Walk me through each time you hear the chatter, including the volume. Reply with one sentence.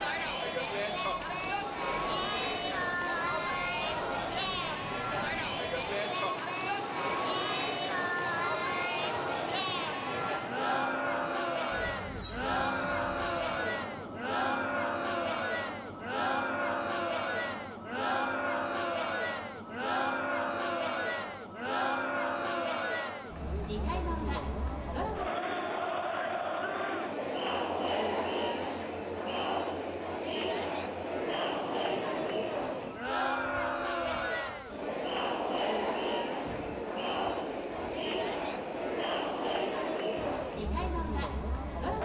You can hear the chatter from 0.0 to 42.0 s, at a steady volume.